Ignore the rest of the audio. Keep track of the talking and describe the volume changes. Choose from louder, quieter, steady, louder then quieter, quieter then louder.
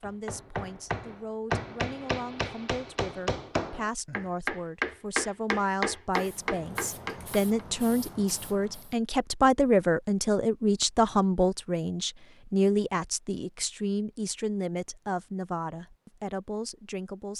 louder then quieter.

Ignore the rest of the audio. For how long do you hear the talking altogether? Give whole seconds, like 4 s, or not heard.
17 s.